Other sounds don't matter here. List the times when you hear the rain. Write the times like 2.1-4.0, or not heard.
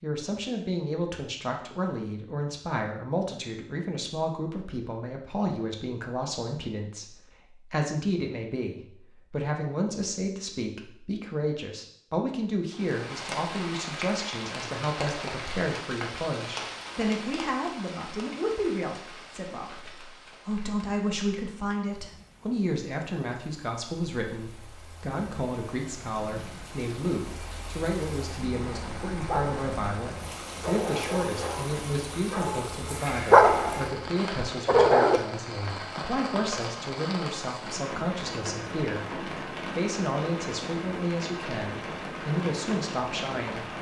12.7-43.7.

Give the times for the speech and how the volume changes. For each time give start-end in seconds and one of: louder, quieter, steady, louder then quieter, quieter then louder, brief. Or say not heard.
0.0-43.7 steady.